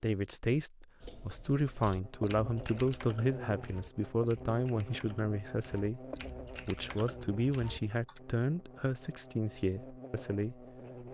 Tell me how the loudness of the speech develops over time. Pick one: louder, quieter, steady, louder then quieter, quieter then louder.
steady.